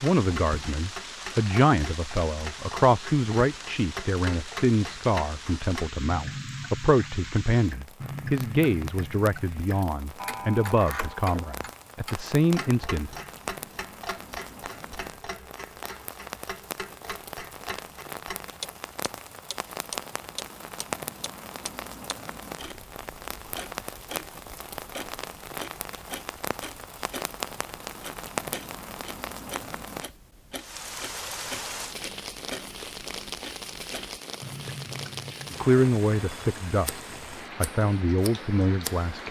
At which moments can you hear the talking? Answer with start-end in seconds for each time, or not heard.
0.0-13.1, 35.5-39.2.